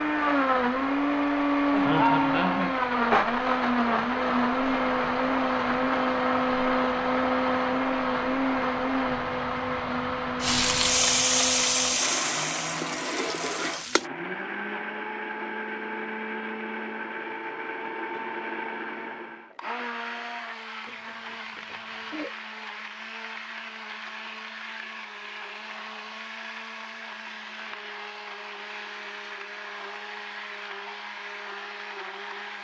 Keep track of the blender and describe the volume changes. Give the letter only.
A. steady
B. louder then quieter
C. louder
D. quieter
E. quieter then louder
D.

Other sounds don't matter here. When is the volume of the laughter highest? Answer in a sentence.
The loudest moment of the laughter is at 2 seconds.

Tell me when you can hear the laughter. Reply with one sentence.
The laughter can be heard from 1.7 to 2.8 s and from 20.9 to 22.4 s.